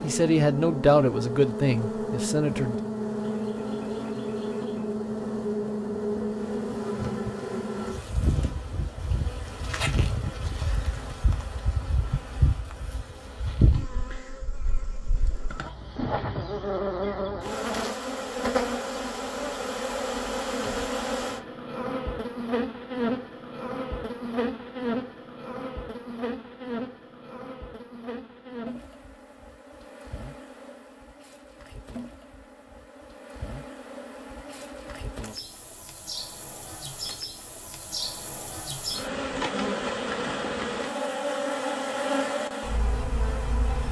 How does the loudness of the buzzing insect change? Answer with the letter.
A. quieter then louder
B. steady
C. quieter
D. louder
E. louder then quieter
A.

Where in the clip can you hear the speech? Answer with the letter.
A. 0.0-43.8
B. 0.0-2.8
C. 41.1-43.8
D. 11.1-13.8
B.